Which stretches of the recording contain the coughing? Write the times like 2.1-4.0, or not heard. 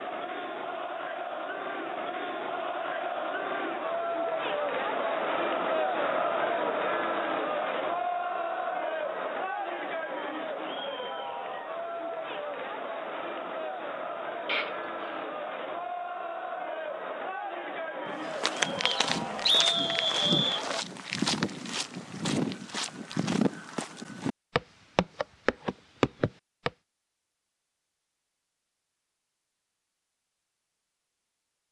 14.4-15.2.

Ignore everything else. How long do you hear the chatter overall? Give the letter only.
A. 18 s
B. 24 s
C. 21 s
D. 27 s
C.